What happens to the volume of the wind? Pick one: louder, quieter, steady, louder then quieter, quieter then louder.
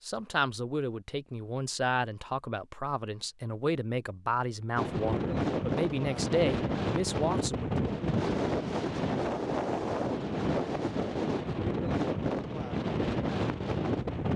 steady.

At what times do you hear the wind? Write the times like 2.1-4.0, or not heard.
4.8-14.3.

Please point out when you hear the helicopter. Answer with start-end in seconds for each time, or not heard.
not heard.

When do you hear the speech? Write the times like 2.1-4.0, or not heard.
0.1-7.7.